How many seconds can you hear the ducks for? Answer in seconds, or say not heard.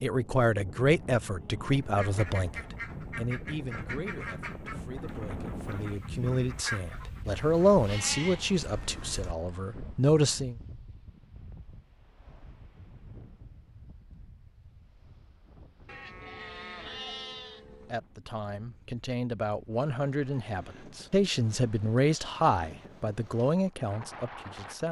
6 s.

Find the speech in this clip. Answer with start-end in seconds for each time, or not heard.
0.0-10.6, 17.9-24.8.